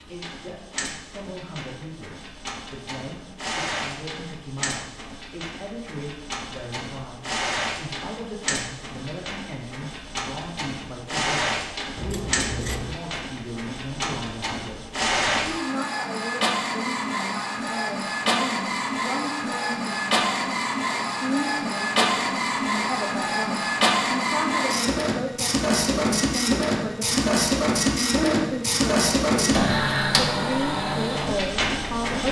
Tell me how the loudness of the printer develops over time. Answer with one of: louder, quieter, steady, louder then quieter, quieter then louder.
louder.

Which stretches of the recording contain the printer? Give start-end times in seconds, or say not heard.
0.0-32.2.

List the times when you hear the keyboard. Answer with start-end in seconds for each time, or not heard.
not heard.